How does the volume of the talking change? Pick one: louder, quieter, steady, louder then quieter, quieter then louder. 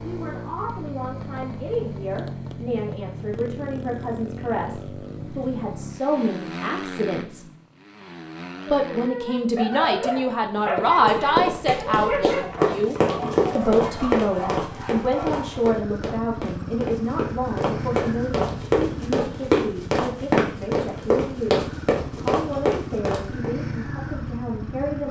louder then quieter.